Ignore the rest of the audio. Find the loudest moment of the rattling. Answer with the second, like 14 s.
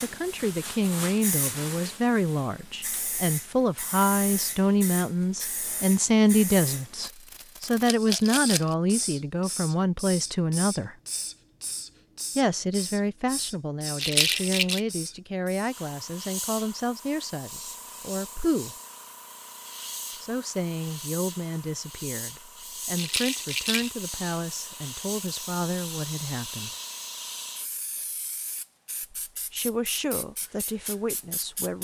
14 s.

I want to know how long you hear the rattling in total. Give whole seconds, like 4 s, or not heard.
3 s.